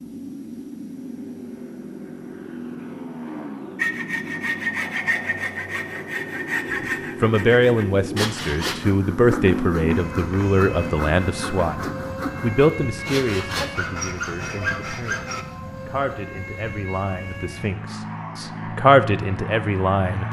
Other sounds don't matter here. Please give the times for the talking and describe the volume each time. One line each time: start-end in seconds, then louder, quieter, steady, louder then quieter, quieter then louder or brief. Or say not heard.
6.7-20.2 quieter then louder.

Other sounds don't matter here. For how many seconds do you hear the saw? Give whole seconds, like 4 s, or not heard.
12 s.